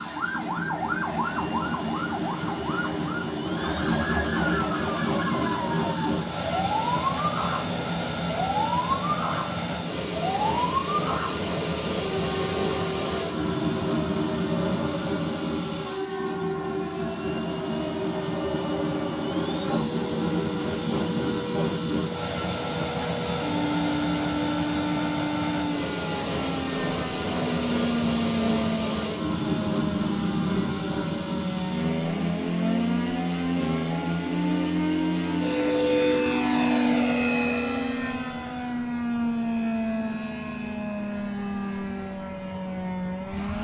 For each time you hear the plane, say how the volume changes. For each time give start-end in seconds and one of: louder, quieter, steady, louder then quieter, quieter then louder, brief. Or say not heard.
0.0-43.5 steady.